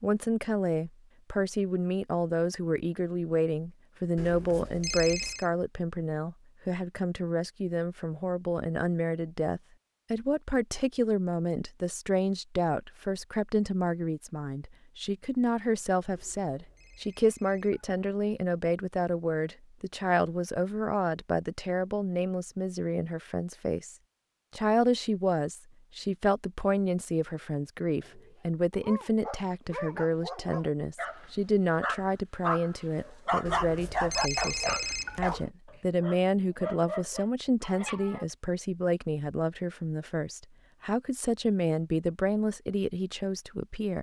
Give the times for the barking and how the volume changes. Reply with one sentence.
The barking can be heard from 28.0 to 38.2 s, getting louder then quieter.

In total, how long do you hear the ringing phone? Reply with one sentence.
The ringing phone can be heard for 5 seconds in total.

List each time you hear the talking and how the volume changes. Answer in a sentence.
You can hear the talking from 0.0 to 23.9 s, at a steady volume; and from 24.6 to 43.9 s, at a steady volume.